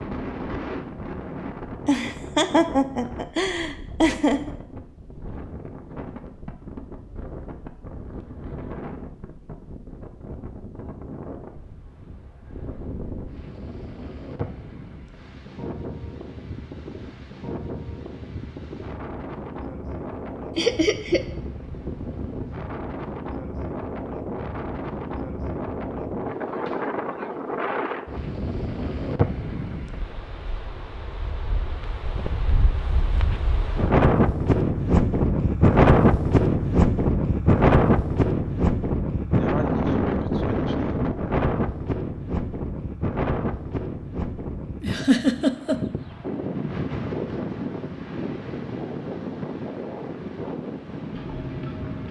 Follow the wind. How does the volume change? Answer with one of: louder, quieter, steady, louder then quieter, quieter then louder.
louder then quieter.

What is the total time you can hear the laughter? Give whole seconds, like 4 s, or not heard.
4 s.